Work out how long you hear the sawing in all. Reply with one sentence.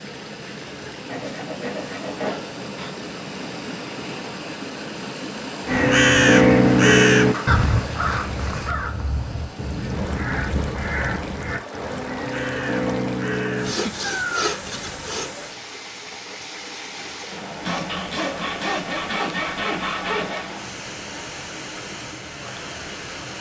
You can hear the sawing for 8 seconds altogether.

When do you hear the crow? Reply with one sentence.
You can hear the crow from 5.7 to 14.6 s.